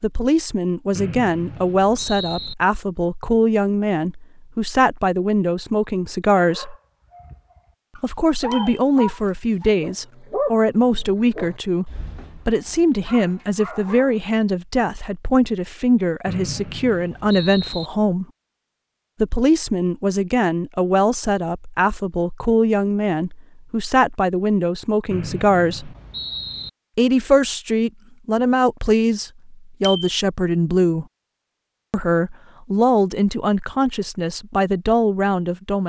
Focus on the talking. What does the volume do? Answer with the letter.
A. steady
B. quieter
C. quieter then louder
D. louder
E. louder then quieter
A.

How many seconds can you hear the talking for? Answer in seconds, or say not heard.
32 s.